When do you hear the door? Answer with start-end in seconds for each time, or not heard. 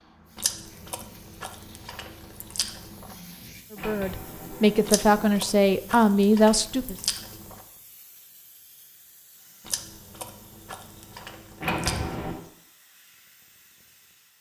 3.8-5.3, 11.6-12.4.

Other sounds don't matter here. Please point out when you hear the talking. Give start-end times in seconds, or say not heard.
3.7-7.0.